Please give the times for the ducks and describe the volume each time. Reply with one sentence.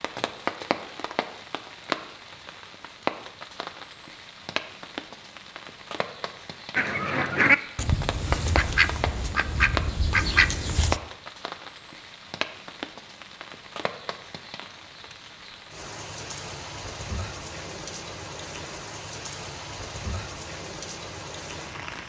You can hear the ducks from 6.8 to 11.0 s, getting quieter then louder.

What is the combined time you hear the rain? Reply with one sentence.
The rain can be heard for 22 seconds in total.